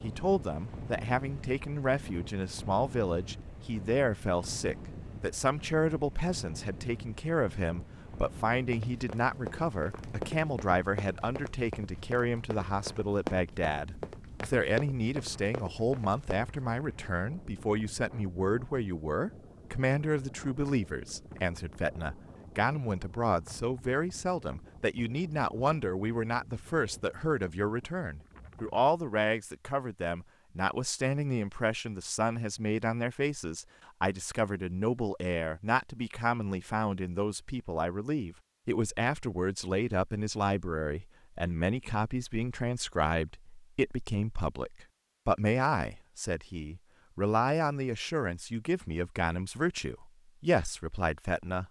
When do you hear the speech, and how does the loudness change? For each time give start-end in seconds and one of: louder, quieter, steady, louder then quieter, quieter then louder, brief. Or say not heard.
0.0-51.6 steady.